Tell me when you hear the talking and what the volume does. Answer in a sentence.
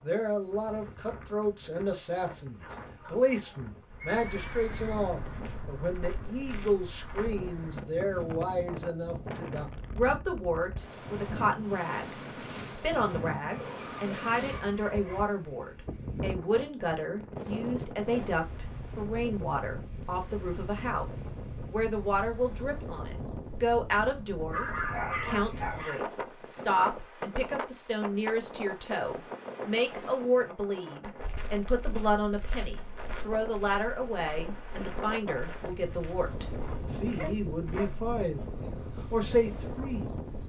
You can hear the talking from 0.0 to 40.4 s, at a steady volume.